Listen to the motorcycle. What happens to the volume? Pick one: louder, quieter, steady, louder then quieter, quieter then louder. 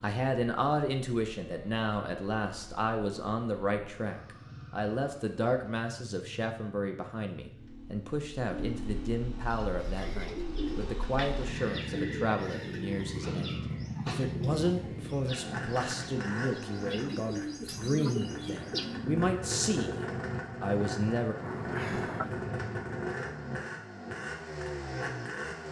louder.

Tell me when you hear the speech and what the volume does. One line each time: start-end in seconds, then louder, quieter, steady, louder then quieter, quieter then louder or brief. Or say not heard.
0.0-21.4 steady.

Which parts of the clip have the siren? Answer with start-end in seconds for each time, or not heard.
not heard.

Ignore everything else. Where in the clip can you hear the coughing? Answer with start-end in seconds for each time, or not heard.
21.4-22.4.